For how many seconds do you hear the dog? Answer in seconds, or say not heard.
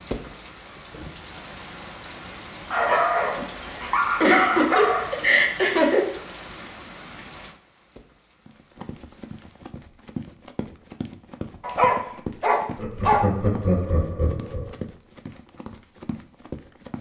4 s.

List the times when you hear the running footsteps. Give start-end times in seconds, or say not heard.
8.4-16.9.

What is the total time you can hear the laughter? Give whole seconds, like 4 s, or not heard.
4 s.